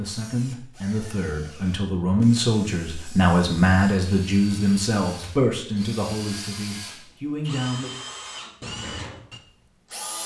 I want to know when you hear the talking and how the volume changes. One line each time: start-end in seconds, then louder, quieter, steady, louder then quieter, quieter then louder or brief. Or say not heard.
0.0-8.0 louder then quieter.